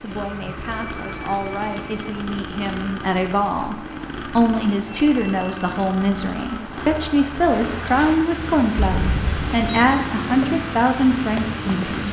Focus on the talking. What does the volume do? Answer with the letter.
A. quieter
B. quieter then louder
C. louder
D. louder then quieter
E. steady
C.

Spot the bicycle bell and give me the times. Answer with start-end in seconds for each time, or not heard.
0.7-2.1, 4.8-5.8, 8.8-9.8.